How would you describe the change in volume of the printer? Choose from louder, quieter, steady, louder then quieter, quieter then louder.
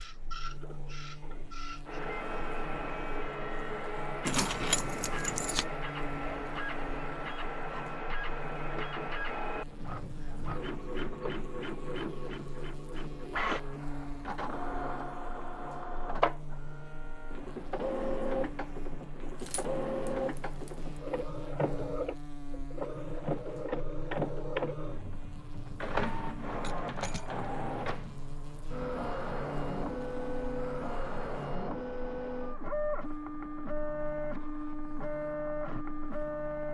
steady.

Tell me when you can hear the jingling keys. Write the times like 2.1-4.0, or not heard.
4.2-5.7, 19.4-21.0, 26.6-27.4.